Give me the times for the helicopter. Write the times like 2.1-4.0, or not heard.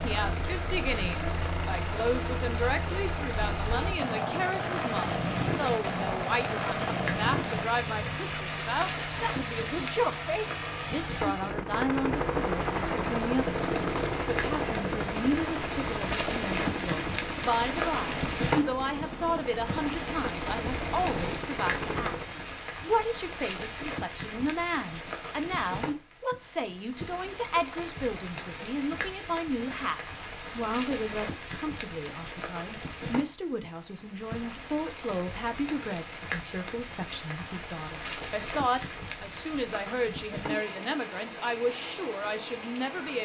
0.0-22.3.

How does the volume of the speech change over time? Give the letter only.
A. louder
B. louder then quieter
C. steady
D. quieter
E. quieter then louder
C.